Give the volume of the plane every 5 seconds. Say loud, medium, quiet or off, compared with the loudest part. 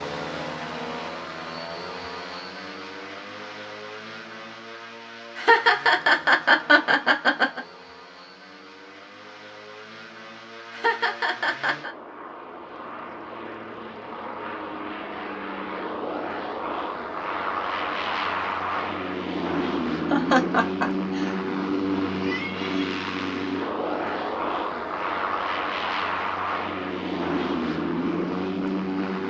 medium, quiet, medium, loud, loud, loud.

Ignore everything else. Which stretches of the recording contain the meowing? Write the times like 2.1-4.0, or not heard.
22.1-22.9.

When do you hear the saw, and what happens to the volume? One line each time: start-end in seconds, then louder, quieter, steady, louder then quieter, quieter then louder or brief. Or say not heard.
not heard.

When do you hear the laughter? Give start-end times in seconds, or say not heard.
5.3-7.6, 10.7-11.9, 20.1-21.4.